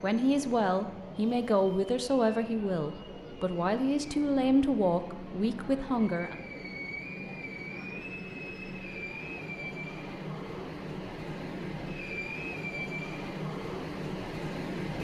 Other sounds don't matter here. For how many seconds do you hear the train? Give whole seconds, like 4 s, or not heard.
15 s.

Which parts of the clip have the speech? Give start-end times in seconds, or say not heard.
0.0-6.4.